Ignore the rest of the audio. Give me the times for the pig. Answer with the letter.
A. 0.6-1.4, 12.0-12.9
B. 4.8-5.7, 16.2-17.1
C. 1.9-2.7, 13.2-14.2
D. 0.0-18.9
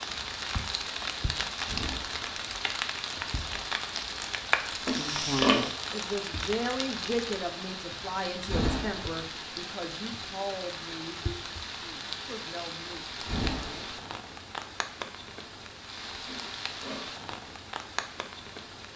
B.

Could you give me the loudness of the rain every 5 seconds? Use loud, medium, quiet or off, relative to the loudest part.
loud, loud, medium, medium.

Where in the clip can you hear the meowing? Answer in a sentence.
You can't hear the meowing here.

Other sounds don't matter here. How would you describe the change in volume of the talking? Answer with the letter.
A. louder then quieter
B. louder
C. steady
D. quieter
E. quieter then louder
D.